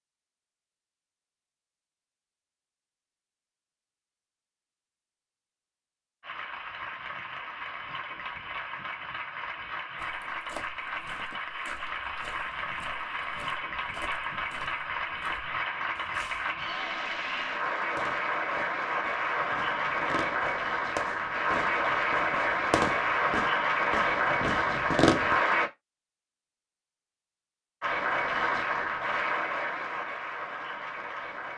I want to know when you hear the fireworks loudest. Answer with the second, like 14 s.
25 s.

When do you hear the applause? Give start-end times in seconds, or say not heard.
6.2-25.7, 27.8-31.5.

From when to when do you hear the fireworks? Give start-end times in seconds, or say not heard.
17.9-25.4.